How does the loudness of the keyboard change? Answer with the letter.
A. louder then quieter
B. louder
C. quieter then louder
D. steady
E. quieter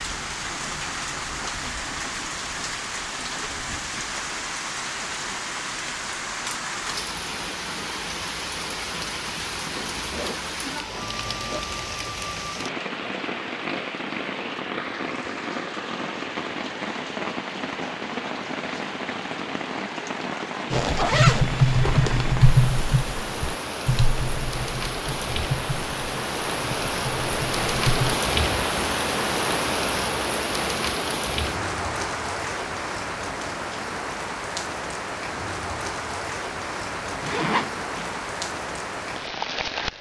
E.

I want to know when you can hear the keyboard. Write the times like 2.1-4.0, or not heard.
20.7-28.2.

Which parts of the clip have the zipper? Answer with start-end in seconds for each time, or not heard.
9.6-11.6, 20.7-22.4, 37.2-38.1.